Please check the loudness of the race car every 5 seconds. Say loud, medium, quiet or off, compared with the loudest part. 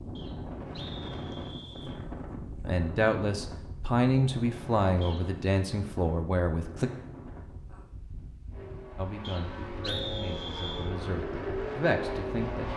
off, medium, loud.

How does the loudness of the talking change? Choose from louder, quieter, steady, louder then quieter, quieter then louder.
quieter then louder.